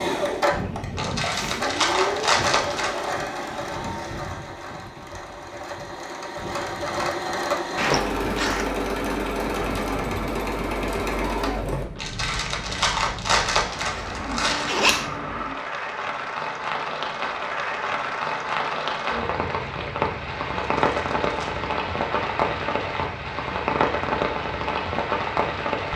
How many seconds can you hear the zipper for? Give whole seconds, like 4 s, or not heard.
3 s.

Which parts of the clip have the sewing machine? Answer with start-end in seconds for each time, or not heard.
0.0-11.9.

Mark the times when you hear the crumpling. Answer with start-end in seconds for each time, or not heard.
0.9-3.1, 11.9-14.7, 20.6-21.6.